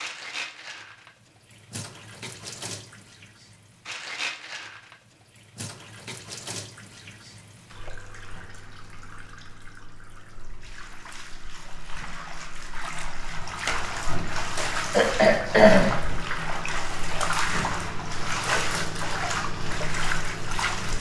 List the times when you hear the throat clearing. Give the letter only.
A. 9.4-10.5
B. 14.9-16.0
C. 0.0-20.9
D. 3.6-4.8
B.